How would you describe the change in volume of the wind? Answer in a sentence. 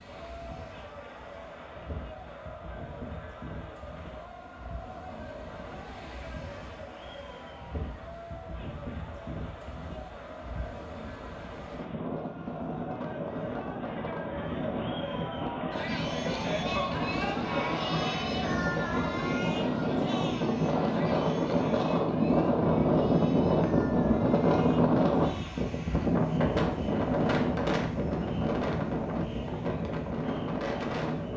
The loudness of the wind goes up.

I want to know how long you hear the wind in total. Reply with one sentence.
The wind can be heard for 31 seconds in total.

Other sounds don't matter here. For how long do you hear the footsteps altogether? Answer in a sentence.
The footsteps can't be heard in this clip.